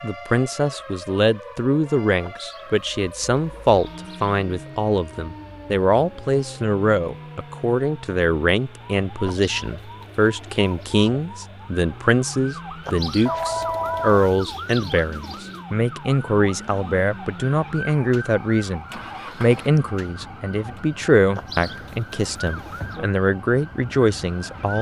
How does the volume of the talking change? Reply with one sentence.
The loudness of the talking stays about the same.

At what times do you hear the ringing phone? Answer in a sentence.
The ringing phone can be heard from 13.2 to 14.2 s.